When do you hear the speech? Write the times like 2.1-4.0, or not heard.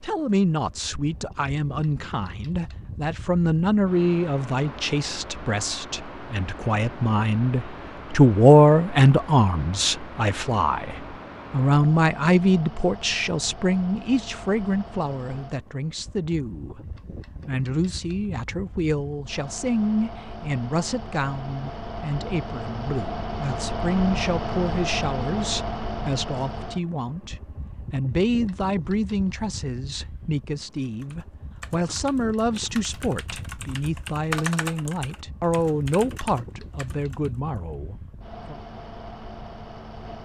0.0-38.6.